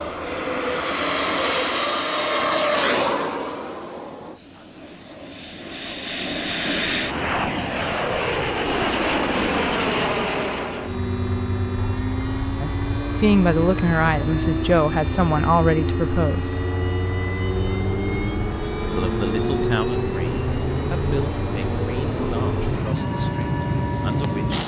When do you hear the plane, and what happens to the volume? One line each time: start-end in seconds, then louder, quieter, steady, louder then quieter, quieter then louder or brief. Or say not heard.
0.0-24.6 steady.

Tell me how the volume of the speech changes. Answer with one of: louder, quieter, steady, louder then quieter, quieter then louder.
quieter.